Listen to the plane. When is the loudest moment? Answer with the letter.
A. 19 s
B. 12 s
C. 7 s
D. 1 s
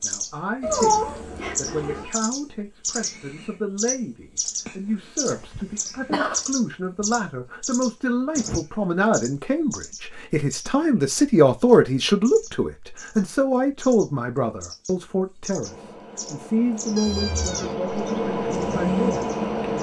A.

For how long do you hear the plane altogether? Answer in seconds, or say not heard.
4 s.